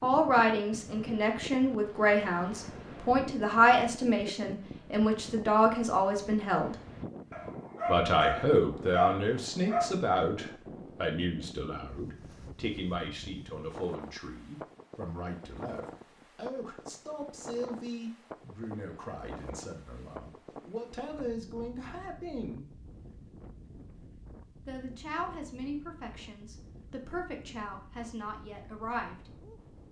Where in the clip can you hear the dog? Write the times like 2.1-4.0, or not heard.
7.3-9.9.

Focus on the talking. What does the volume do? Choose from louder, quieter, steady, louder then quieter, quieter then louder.
quieter.